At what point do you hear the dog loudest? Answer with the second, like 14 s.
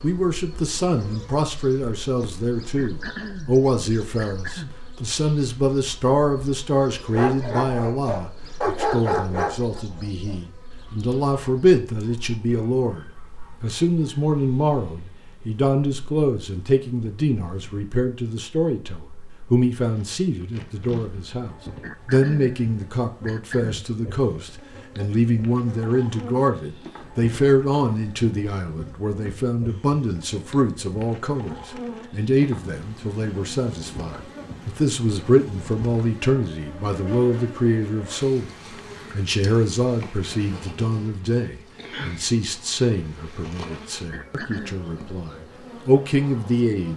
9 s.